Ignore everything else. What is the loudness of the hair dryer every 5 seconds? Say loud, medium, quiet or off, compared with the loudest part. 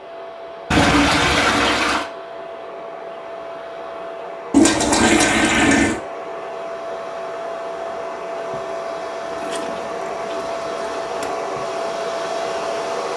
medium, loud, loud.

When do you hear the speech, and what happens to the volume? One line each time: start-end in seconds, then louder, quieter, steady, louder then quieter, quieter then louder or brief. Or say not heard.
not heard.